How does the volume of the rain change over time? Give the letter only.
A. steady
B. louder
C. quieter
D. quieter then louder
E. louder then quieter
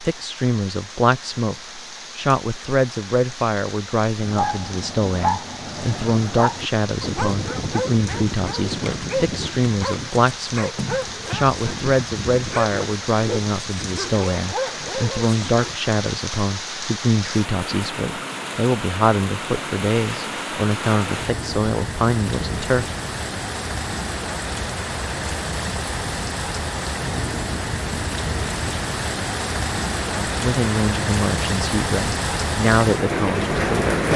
B.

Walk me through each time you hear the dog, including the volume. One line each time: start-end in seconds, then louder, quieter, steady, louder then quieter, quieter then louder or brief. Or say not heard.
4.2-15.8 steady.